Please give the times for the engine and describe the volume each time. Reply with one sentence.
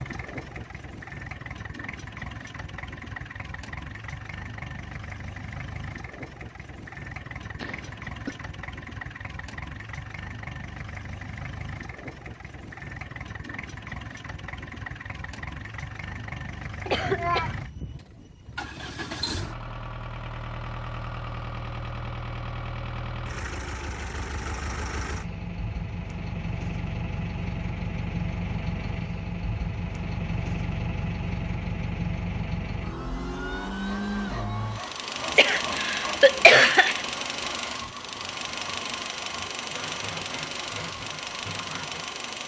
The engine can be heard from 0.0 to 42.4 s, getting louder.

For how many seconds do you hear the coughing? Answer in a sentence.
The coughing can be heard for 3 seconds in total.